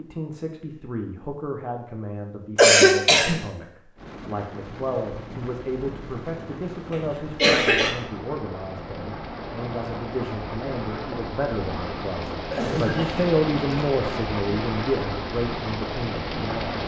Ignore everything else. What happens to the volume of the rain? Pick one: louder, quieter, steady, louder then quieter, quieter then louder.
louder.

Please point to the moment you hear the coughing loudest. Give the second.
3 s.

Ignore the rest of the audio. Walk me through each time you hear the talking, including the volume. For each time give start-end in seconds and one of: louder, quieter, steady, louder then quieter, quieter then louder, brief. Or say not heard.
0.0-16.8 louder.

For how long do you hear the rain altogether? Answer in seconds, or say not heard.
13 s.